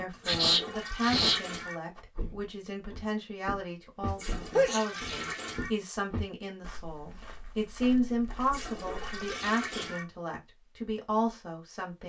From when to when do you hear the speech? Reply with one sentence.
The speech can be heard from 0.0 to 12.0 s.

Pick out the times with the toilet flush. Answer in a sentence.
You can hear the toilet flush from 0.1 to 1.8 s, from 4.0 to 5.7 s and from 8.4 to 10.1 s.